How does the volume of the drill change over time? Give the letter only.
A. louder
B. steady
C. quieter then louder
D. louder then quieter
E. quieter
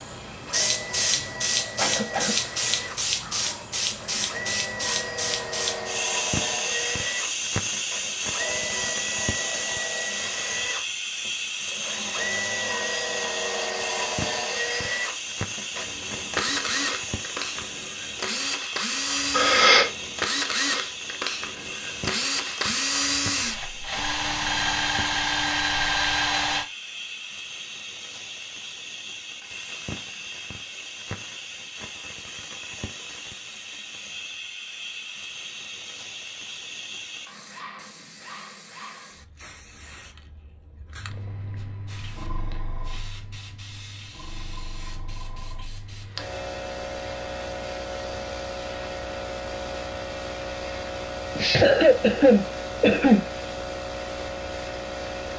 A.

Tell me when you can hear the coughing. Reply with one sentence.
You can hear the coughing from 1.8 to 2.4 s, from 19.3 to 19.9 s and from 51.4 to 53.2 s.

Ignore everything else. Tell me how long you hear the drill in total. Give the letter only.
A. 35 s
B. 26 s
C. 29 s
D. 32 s
B.